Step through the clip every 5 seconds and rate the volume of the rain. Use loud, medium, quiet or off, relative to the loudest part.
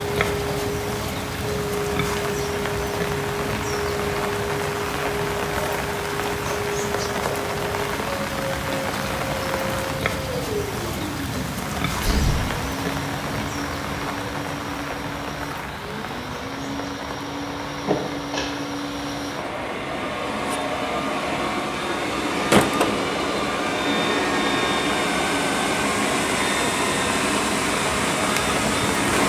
loud, loud, loud, medium, medium, loud.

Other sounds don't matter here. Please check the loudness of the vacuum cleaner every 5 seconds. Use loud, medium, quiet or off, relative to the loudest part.
medium, medium, medium, medium, loud, loud.